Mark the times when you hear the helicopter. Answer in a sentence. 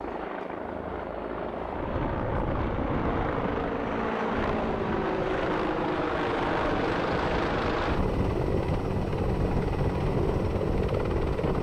The helicopter can be heard from 0.0 to 11.5 s.